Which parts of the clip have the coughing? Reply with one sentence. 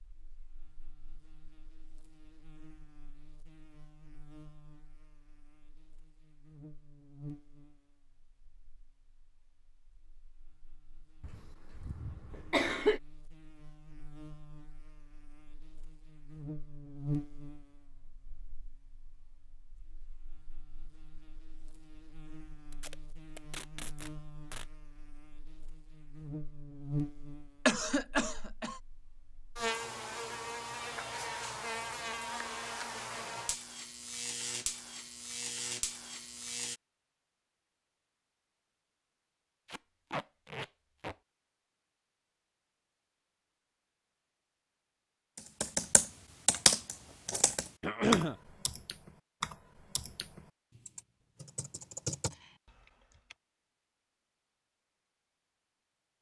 The coughing can be heard from 11.2 to 13.0 s, from 27.6 to 28.8 s and from 47.8 to 48.4 s.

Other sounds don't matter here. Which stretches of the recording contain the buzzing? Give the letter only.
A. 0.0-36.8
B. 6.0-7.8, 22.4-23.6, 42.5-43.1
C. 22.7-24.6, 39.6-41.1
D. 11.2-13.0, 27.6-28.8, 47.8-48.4
A.